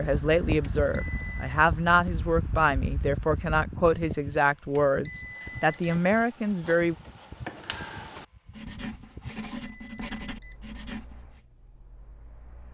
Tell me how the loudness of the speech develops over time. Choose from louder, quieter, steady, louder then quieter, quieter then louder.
steady.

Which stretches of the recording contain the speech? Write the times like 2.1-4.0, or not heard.
0.0-7.0.